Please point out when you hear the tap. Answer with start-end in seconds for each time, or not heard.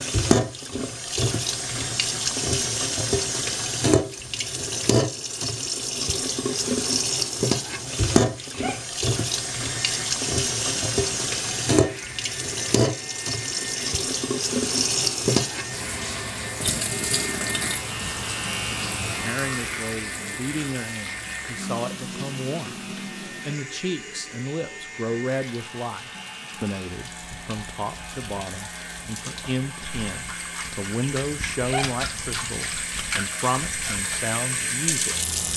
0.0-35.5.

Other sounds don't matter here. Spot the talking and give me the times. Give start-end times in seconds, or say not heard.
19.1-35.5.